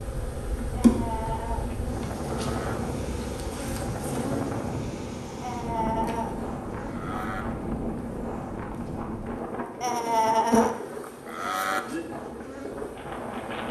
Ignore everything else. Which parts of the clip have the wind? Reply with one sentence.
You can hear the wind from 0.0 to 13.6 s.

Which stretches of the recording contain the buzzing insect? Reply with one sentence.
The buzzing insect can be heard from 0.0 to 13.6 s.